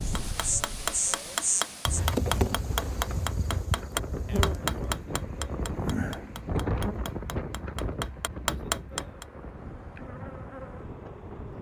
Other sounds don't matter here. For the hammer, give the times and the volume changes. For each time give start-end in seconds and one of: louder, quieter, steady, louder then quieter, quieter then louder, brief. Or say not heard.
0.0-9.2 quieter then louder.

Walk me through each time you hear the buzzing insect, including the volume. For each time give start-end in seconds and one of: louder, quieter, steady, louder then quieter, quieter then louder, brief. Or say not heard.
0.0-11.5 quieter.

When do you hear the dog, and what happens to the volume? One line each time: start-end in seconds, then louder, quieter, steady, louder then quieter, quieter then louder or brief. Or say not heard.
not heard.